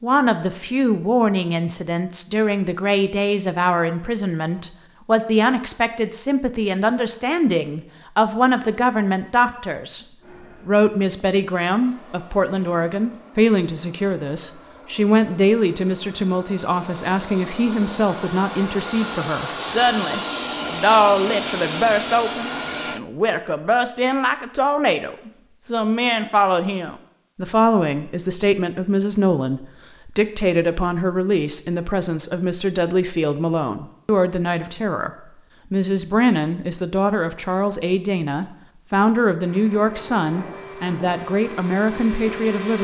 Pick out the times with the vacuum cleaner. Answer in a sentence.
The vacuum cleaner can be heard from 10.2 to 23.0 s and from 39.4 to 42.8 s.